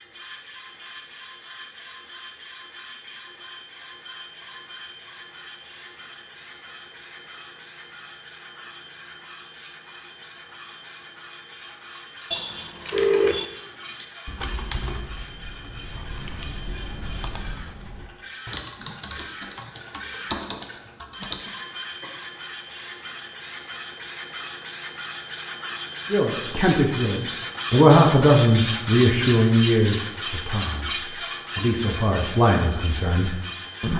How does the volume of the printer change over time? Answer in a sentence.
The volume of the printer goes up.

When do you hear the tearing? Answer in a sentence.
The tearing can't be heard in this clip.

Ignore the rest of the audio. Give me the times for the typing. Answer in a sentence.
The typing can be heard from 12.8 to 21.6 s.